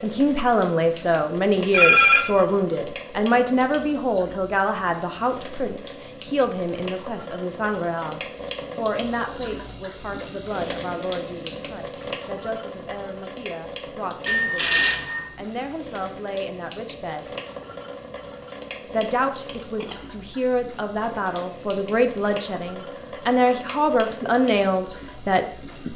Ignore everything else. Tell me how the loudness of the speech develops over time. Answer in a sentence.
The loudness of the speech goes down, then up.